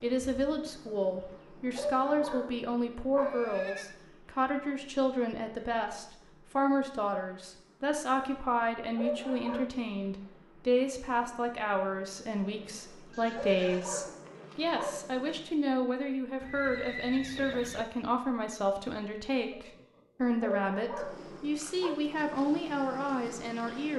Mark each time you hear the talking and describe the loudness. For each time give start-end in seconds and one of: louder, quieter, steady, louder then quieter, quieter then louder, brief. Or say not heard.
0.0-23.9 steady.